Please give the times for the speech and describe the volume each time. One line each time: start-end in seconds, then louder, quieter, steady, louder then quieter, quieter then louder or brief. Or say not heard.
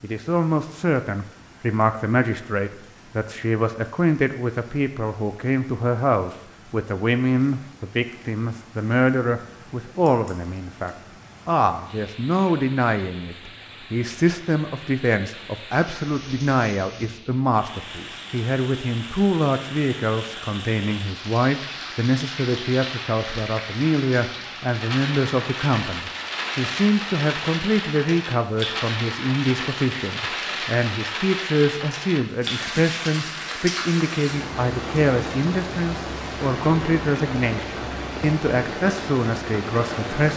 0.0-40.3 steady.